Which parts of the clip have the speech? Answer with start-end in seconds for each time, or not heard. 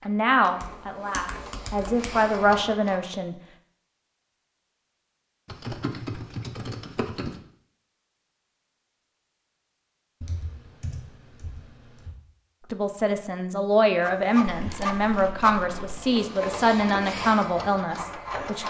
0.1-3.4, 12.7-18.6.